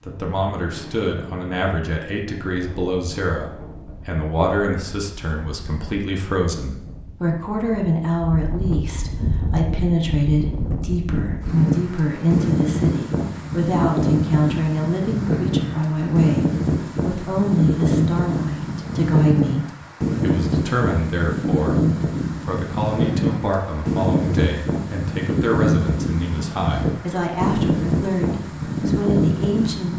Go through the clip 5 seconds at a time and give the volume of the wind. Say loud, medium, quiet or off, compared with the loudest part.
quiet, medium, loud, loud, loud, loud.